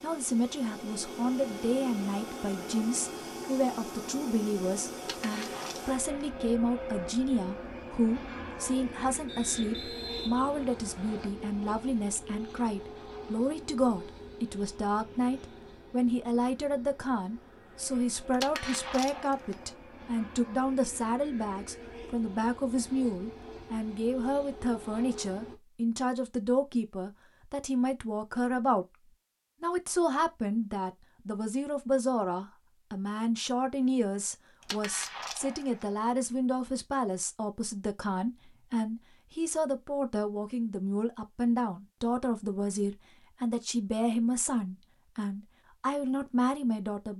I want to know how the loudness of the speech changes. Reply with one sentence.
The volume of the speech stays about the same.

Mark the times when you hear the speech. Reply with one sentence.
The speech can be heard from 0.0 to 28.9 s and from 29.6 to 47.1 s.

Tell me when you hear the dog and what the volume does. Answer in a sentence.
The dog can't be heard in this clip.